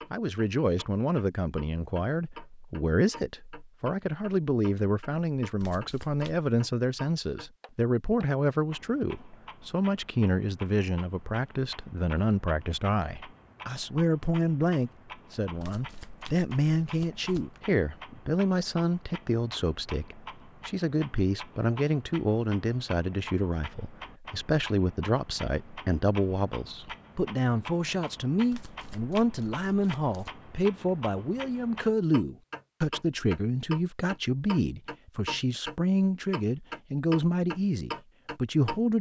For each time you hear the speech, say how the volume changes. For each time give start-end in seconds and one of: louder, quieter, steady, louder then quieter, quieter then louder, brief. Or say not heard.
0.1-38.9 steady.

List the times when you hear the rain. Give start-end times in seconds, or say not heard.
not heard.